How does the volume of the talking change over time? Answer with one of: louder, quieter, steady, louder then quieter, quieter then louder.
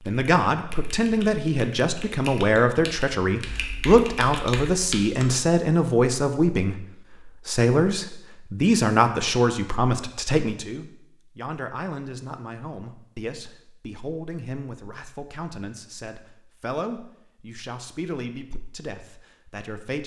quieter.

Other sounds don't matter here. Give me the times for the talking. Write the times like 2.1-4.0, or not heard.
0.1-20.0.